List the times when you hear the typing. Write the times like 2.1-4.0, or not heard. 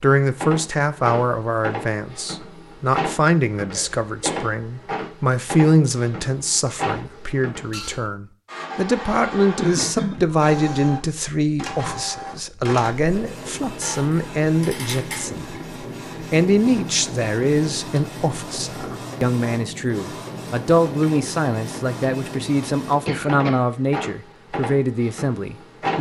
not heard.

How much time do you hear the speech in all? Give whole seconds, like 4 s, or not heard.
25 s.